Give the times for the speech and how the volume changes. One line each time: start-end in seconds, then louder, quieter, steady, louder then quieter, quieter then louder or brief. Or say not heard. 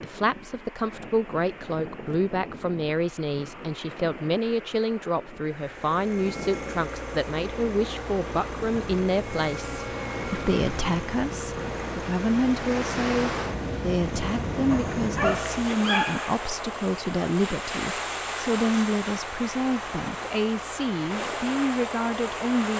0.0-22.7 steady.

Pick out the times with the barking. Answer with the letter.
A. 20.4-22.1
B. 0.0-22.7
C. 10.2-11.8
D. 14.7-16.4
D.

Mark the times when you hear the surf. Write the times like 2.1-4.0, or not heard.
0.0-22.7.